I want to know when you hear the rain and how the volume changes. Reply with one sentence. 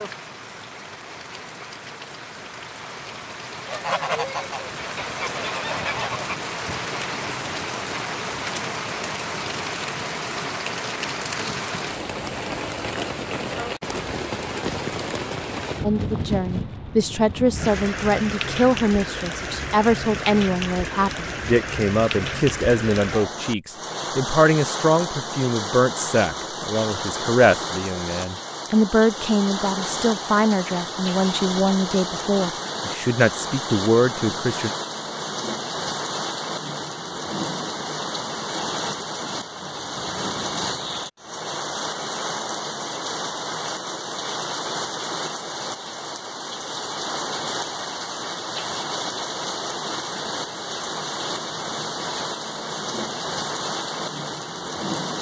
You can hear the rain from 0.0 to 55.1 s, at a steady volume.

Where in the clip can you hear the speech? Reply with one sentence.
You can hear the speech from 15.8 to 34.7 s.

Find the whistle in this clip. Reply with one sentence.
You can't hear the whistle here.